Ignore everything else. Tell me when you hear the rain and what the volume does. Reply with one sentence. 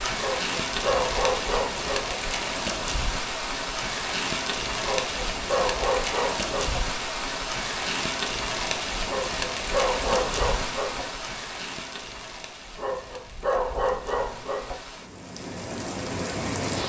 The rain can be heard from 0.0 to 16.8 s, getting quieter.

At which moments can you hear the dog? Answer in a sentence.
You can hear the dog from 0.1 to 2.1 s, from 4.8 to 6.8 s, from 9.1 to 11.1 s and from 12.8 to 14.8 s.